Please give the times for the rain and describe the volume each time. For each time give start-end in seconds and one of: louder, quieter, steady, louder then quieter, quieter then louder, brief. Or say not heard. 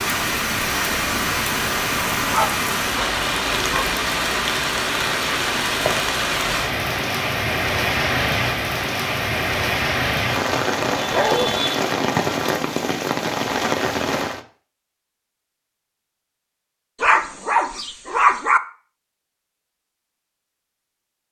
0.0-14.4 steady.